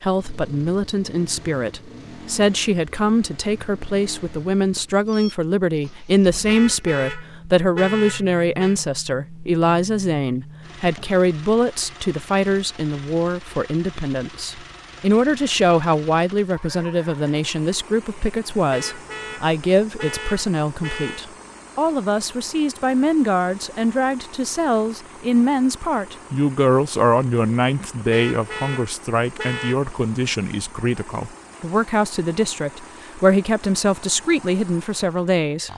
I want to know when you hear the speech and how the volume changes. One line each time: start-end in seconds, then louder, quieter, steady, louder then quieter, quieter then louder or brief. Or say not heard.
0.0-35.7 steady.